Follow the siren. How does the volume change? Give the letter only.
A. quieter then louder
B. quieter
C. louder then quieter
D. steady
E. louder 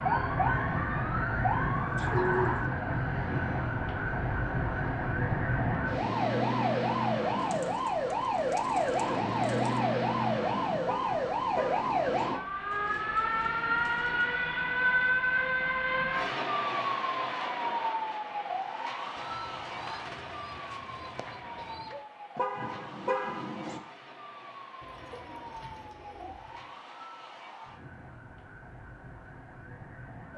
B.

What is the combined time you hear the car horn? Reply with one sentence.
The car horn can be heard for 3 seconds in total.